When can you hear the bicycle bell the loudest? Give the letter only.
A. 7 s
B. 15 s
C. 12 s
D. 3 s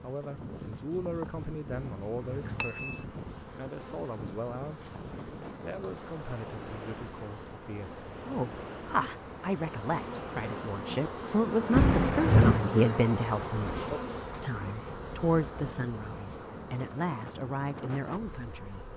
C.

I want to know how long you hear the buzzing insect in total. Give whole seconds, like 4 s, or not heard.
19 s.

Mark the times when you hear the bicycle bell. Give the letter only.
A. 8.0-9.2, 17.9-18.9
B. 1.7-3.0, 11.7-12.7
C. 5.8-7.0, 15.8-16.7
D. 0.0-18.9
B.